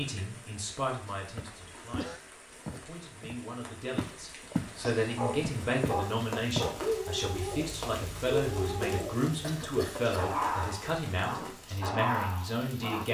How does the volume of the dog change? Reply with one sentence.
The loudness of the dog stays about the same.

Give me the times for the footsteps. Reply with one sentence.
The footsteps can be heard from 1.4 to 4.8 s and from 5.6 to 6.8 s.